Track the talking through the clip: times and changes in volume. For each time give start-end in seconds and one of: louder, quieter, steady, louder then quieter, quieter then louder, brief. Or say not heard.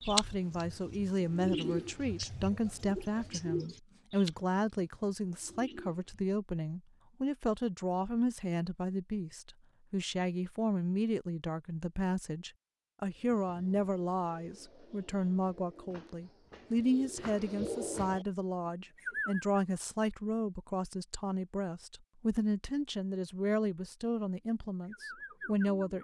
0.0-25.9 steady.